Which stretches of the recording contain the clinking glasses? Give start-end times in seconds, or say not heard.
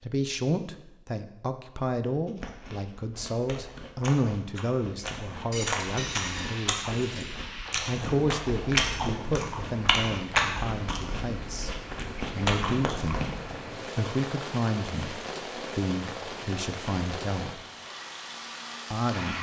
5.5-7.2.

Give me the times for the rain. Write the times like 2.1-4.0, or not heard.
5.9-19.3.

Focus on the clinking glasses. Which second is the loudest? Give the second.
6 s.